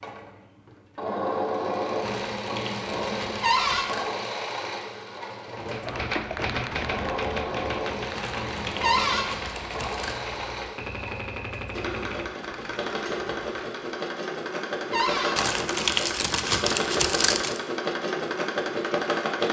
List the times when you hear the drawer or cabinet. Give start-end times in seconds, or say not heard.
3.4-3.9, 8.8-9.2, 14.9-15.3.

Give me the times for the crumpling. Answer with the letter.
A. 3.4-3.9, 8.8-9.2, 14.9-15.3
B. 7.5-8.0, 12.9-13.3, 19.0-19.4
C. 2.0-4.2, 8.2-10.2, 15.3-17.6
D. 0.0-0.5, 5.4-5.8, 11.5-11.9
C.